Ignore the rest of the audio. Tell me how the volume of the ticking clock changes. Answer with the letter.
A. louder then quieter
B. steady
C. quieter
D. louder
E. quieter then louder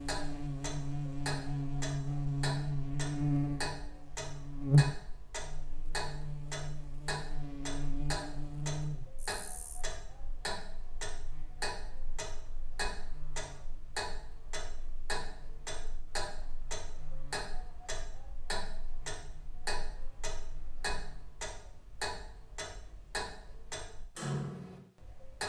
B.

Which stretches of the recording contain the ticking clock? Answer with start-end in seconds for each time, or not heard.
0.0-25.4.